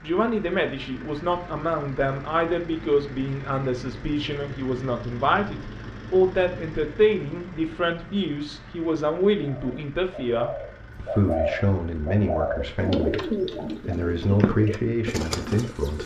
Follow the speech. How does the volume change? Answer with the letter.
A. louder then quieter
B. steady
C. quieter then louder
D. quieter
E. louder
B.